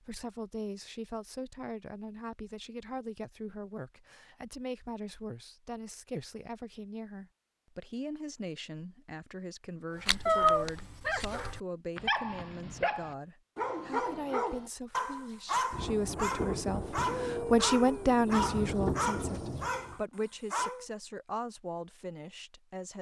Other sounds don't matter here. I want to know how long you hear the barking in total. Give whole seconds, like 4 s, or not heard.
11 s.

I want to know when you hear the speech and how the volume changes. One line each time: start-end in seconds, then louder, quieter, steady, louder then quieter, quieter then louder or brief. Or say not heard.
0.0-22.9 louder.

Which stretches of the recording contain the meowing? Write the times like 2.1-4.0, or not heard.
10.2-11.2.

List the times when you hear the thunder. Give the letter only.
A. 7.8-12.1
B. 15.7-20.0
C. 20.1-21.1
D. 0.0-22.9
B.